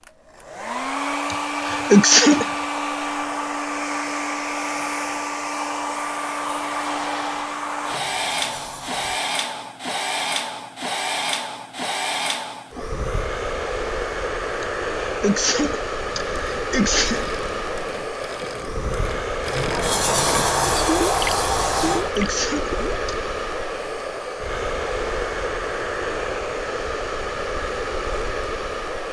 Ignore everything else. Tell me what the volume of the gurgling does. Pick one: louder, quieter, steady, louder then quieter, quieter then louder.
louder.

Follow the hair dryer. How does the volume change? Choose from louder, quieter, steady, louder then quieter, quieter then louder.
steady.